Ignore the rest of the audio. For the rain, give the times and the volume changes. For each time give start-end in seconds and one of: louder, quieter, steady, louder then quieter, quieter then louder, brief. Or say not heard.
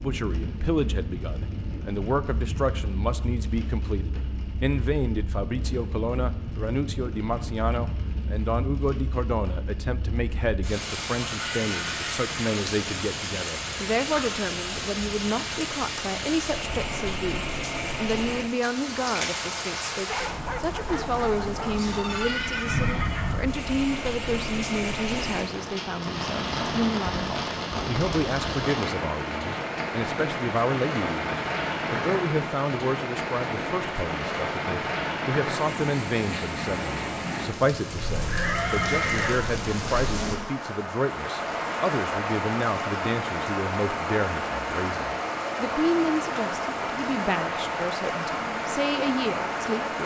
0.0-50.0 louder.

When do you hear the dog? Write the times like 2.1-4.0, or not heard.
20.1-22.4.